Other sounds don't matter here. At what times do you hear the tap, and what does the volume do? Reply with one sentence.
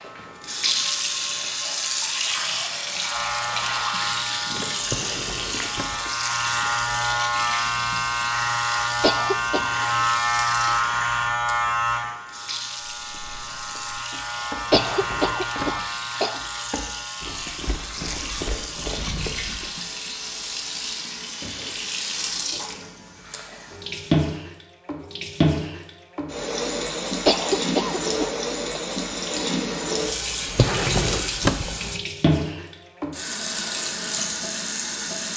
The tap can be heard from 0.0 to 35.3 s, getting quieter then louder.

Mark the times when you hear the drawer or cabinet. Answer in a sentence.
You can hear the drawer or cabinet from 4.8 to 6.0 s, from 14.7 to 15.8 s and from 30.5 to 31.7 s.